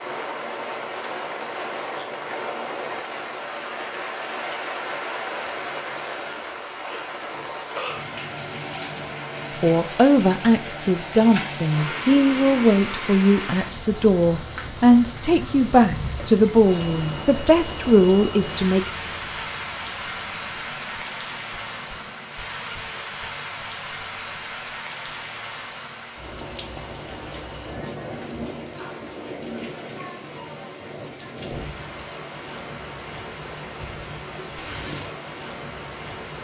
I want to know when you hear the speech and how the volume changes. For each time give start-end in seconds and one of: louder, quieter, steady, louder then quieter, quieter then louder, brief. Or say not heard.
9.6-18.9 steady.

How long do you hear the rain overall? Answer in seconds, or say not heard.
36 s.